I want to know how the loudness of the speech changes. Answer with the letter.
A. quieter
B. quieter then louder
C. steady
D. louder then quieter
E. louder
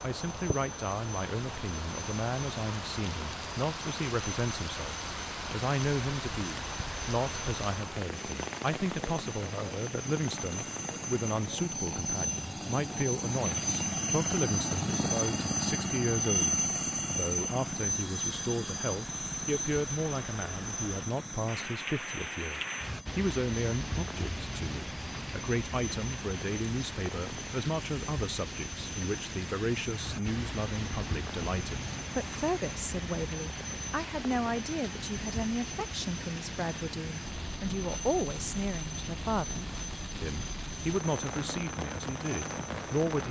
C.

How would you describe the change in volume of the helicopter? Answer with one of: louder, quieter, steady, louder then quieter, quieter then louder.
louder then quieter.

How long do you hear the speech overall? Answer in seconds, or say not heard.
43 s.